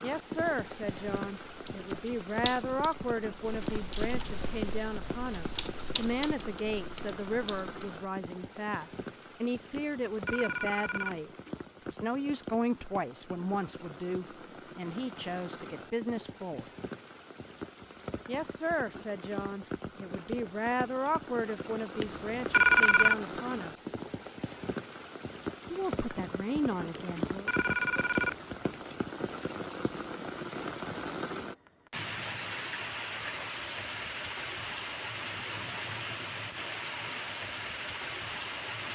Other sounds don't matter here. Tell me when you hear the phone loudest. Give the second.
23 s.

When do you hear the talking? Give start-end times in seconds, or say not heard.
0.0-16.6, 18.2-23.9, 25.7-27.5.